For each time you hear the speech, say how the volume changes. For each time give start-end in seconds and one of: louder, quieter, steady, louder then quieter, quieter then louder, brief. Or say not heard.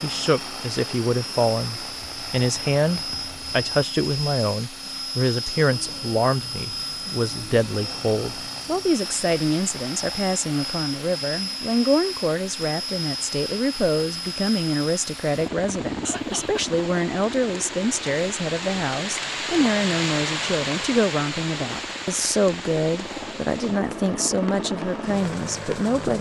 0.0-26.1 steady.